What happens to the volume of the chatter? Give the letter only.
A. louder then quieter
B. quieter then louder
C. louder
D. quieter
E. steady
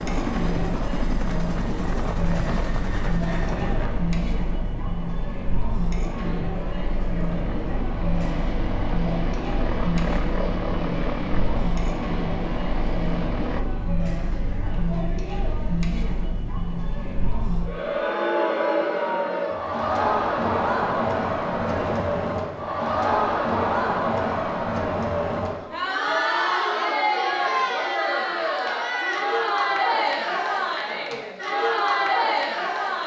C.